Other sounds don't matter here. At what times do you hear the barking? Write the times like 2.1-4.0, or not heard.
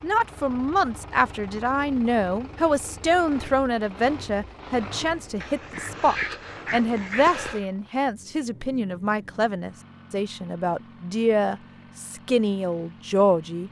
5.4-7.7.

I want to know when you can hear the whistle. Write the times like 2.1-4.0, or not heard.
not heard.